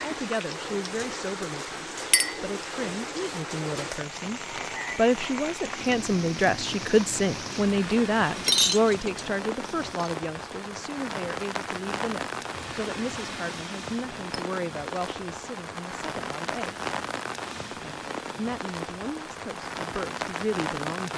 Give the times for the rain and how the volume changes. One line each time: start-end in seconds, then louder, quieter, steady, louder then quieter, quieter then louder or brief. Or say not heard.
0.0-21.1 steady.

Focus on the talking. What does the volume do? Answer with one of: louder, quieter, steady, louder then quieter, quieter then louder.
louder then quieter.